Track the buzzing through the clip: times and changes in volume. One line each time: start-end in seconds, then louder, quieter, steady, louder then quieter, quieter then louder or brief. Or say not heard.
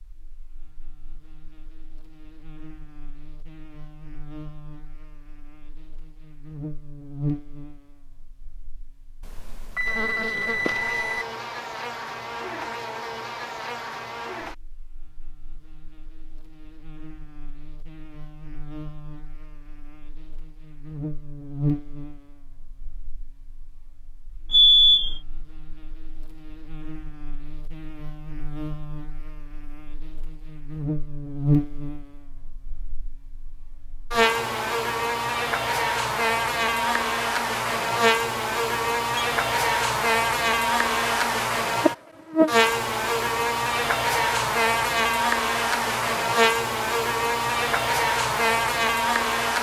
0.0-49.5 louder.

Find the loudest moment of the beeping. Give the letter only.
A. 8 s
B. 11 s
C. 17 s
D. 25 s
D.